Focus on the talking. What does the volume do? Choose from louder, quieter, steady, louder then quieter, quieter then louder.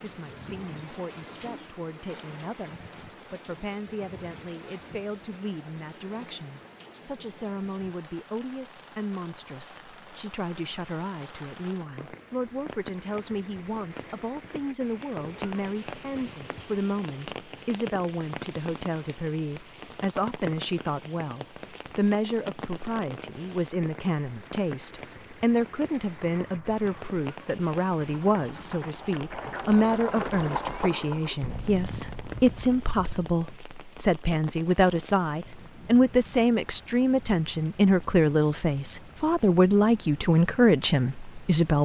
louder.